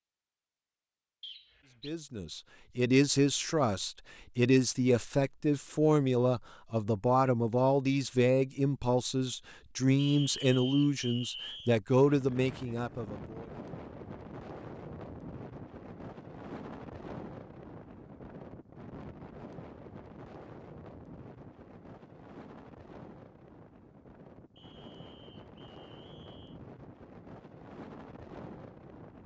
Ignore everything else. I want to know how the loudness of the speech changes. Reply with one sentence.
The volume of the speech stays about the same.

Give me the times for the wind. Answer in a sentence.
You can hear the wind from 12.0 to 29.2 s.